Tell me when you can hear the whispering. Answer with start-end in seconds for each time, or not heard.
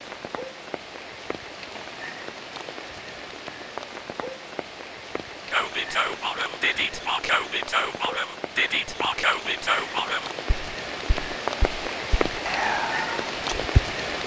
5.5-14.0.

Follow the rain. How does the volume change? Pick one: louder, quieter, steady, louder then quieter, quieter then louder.
louder.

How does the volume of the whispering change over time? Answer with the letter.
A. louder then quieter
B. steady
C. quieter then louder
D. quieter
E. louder
C.